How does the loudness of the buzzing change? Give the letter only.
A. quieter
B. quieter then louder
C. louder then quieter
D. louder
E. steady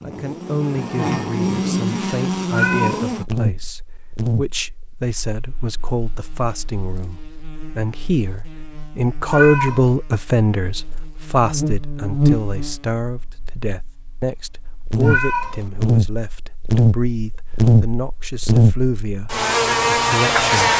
B.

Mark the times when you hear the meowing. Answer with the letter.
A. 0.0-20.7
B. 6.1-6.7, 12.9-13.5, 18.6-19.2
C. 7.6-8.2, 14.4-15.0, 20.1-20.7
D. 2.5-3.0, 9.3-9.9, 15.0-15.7
D.